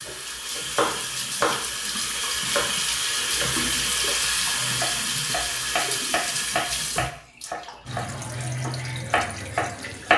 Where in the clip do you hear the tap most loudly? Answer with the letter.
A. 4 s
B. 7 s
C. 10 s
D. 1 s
A.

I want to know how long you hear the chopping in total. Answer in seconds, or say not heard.
10 s.